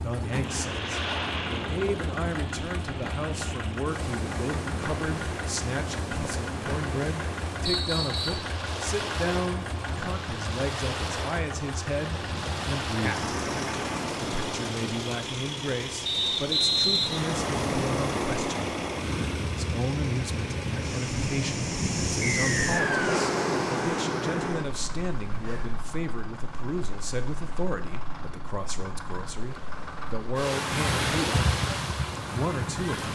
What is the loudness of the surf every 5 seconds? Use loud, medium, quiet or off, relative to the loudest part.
medium, medium, medium, loud, loud, quiet, loud.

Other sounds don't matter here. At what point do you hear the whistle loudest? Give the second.
17 s.